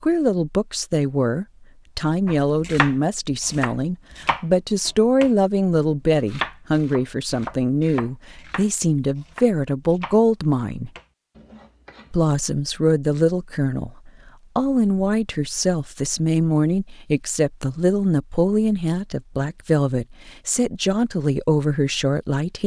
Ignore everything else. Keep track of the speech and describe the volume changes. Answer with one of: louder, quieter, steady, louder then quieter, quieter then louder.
steady.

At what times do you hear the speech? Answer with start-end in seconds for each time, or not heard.
0.0-10.9, 12.1-22.6.